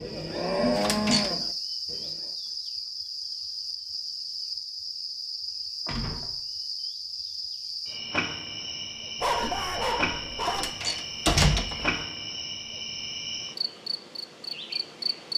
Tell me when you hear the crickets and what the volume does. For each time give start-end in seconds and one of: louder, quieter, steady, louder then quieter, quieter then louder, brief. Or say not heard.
0.0-15.3 steady.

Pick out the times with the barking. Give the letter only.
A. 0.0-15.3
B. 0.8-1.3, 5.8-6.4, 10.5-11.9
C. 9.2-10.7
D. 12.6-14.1
C.